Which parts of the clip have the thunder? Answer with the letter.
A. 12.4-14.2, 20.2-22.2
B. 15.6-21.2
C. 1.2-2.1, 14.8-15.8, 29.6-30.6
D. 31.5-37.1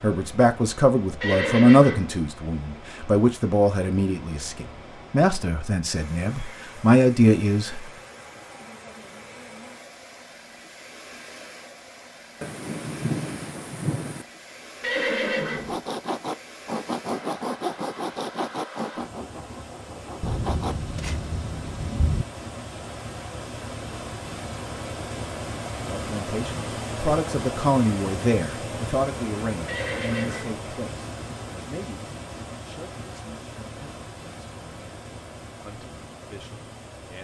A.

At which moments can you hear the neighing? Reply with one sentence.
The neighing can be heard from 1.2 to 2.1 s, from 14.8 to 15.8 s and from 29.6 to 30.6 s.